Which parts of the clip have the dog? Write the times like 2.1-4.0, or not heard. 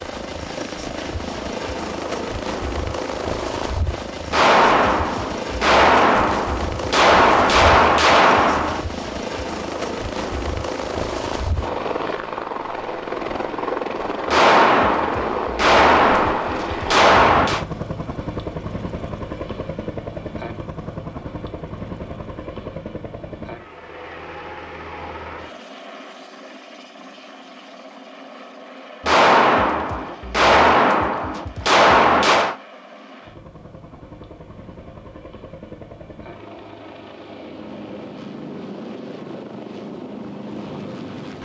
not heard.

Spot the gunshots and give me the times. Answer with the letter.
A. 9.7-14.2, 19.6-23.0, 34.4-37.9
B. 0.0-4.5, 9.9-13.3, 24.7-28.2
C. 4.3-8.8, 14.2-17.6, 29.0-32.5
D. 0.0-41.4
C.